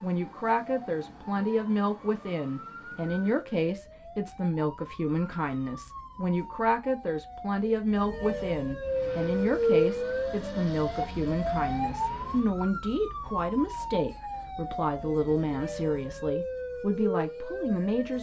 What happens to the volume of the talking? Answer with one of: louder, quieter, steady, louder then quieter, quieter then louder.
steady.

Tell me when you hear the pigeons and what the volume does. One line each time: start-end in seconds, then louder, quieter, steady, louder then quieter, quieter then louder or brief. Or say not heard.
not heard.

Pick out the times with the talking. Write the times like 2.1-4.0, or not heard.
0.0-18.1.